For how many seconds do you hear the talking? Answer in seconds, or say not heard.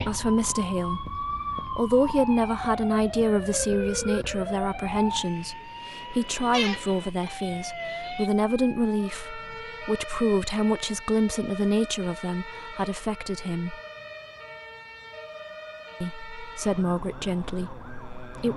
16 s.